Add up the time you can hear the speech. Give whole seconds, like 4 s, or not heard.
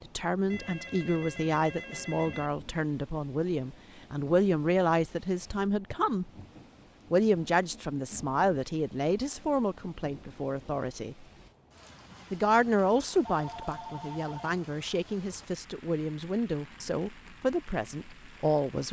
17 s.